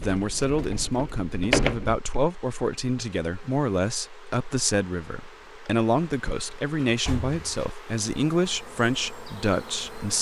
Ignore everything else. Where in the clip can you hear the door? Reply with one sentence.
The door can be heard from 0.0 to 2.0 s and from 6.3 to 7.7 s.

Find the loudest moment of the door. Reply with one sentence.
The volume of the door peaks at 2 seconds.